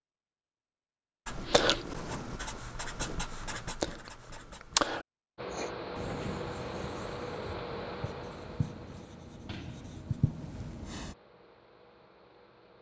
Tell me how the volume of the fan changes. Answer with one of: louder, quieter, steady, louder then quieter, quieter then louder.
quieter.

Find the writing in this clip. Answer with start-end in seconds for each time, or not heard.
1.2-11.2.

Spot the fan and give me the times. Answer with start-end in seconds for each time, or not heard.
5.3-12.7.